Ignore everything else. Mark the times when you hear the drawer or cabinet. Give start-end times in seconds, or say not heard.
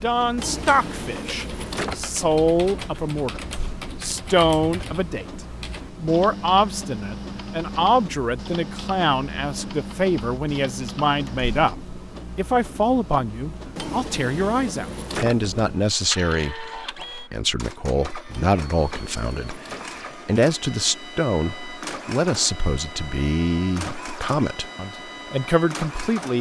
0.3-2.0, 13.8-15.6, 18.3-20.1.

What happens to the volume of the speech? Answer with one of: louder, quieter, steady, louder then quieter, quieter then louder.
steady.